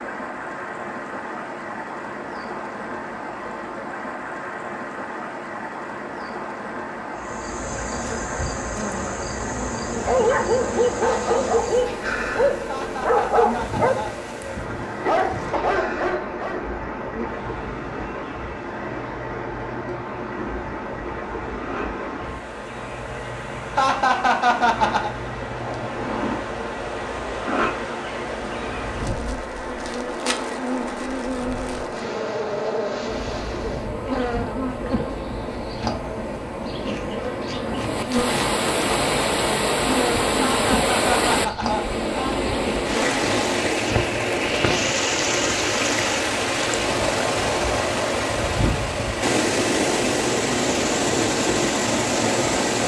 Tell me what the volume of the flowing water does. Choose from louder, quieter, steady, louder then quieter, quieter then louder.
louder.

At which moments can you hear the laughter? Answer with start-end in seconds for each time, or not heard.
12.7-14.1, 23.8-25.1, 40.4-42.4.